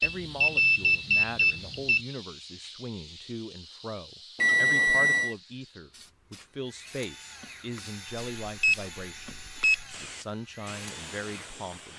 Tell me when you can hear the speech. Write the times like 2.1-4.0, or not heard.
0.0-11.9.